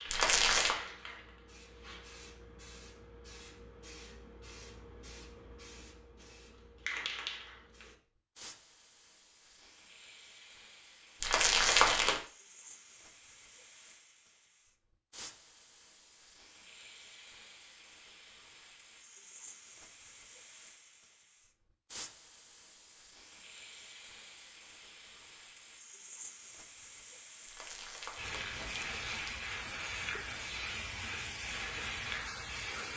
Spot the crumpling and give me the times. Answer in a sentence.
The crumpling can be heard from 0.1 to 0.8 s, from 11.2 to 12.2 s and from 27.4 to 29.4 s.